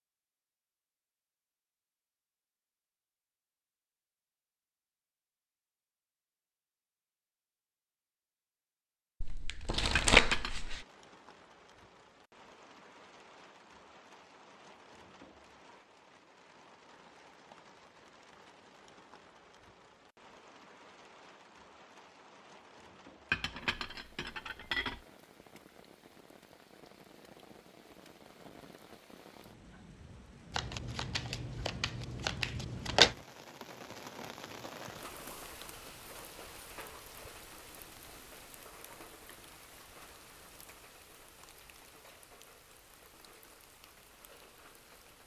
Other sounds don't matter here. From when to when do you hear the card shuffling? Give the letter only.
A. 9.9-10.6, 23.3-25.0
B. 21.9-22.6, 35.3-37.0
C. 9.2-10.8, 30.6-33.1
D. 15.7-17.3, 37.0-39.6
C.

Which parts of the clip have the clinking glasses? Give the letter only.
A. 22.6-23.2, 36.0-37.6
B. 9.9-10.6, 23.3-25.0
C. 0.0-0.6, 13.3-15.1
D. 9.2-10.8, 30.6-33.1
B.